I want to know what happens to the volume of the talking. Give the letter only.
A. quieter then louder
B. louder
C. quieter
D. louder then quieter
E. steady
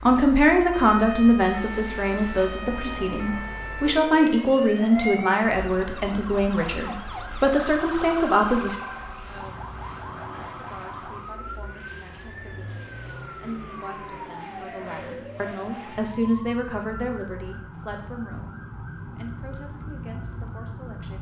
C.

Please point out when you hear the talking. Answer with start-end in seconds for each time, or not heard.
0.0-8.8, 10.6-21.1.